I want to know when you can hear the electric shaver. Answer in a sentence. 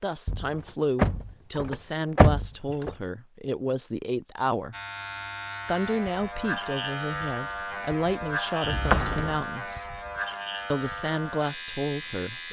You can hear the electric shaver from 4.7 to 12.4 s.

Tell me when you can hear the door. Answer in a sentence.
The door can be heard from 0.2 to 3.0 s and from 8.6 to 9.4 s.